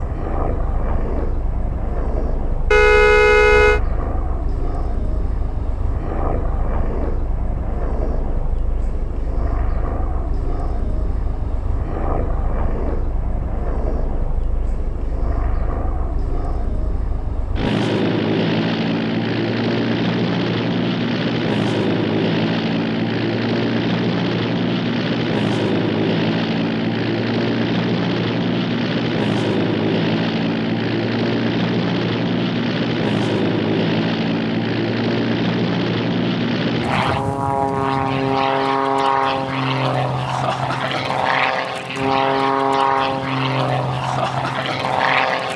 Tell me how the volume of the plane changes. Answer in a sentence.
The loudness of the plane goes up.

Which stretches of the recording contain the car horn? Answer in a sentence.
You can hear the car horn from 2.7 to 3.8 s.